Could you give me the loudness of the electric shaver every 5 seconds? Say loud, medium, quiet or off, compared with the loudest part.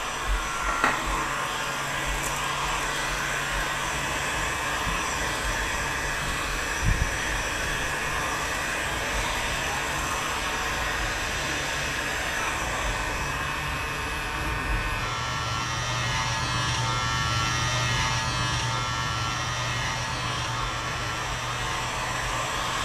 medium, medium, medium, loud, medium.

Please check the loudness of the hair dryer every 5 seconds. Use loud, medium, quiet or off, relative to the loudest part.
loud, loud, loud, medium, loud.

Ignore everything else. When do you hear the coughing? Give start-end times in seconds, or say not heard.
not heard.